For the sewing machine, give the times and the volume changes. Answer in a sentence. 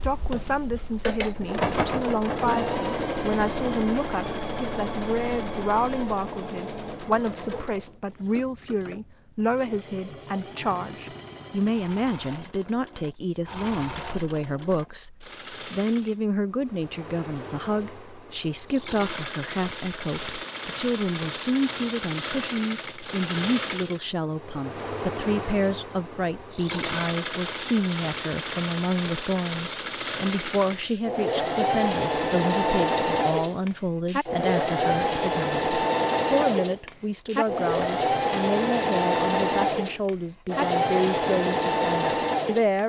You can hear the sewing machine from 0.0 to 42.8 s, getting quieter then louder.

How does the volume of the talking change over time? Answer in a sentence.
The volume of the talking stays about the same.